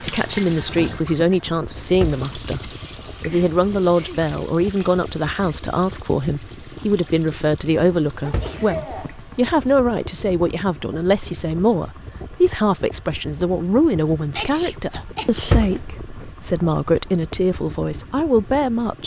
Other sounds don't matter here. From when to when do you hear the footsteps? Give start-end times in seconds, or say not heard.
not heard.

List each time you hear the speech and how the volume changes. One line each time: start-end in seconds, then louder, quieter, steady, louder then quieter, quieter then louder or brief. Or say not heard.
0.0-2.6 brief
3.2-19.0 steady.